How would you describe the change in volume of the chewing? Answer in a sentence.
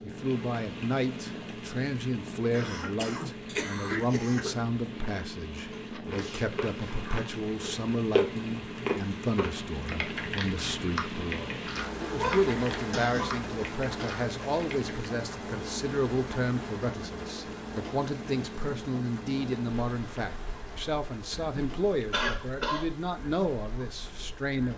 The volume of the chewing goes up, then down.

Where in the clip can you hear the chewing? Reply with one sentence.
The chewing can be heard from 5.5 to 14.9 s.